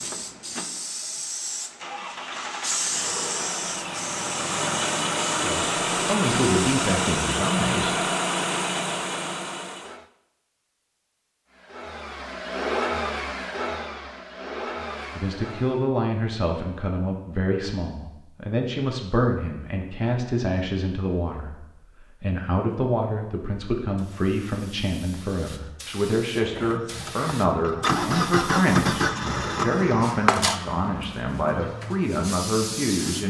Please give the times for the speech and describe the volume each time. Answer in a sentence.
The speech can be heard briefly from 5.4 to 7.9 s; and from 15.2 to 33.2 s, at a steady volume.